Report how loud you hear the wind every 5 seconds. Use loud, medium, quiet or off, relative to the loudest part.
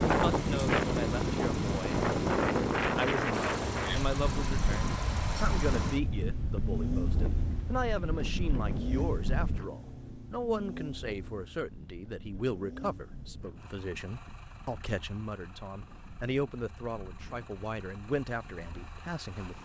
loud, medium, quiet, quiet.